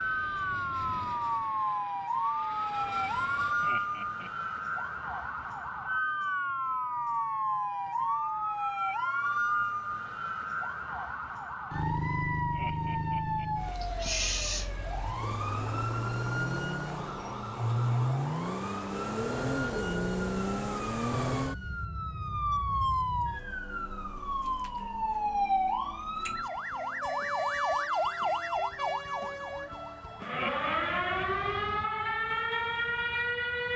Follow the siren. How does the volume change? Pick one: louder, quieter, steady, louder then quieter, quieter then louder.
steady.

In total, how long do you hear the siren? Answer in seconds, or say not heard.
34 s.